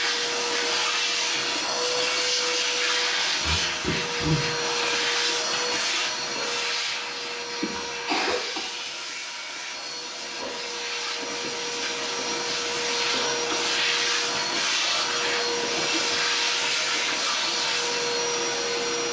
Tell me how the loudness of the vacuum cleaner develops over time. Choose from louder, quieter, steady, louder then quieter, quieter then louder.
quieter then louder.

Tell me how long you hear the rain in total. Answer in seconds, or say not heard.
not heard.